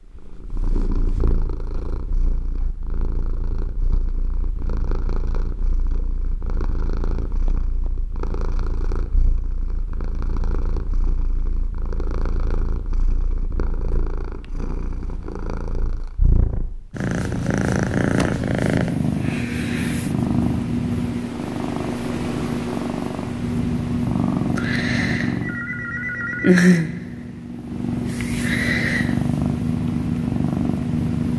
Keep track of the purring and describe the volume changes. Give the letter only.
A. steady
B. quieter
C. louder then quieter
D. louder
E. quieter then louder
D.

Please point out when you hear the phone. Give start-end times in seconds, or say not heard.
25.4-26.6.